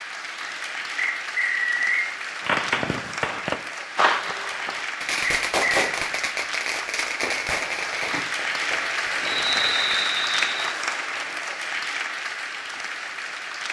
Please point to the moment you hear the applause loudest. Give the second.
10 s.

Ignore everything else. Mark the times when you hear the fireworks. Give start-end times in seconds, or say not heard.
2.4-10.0.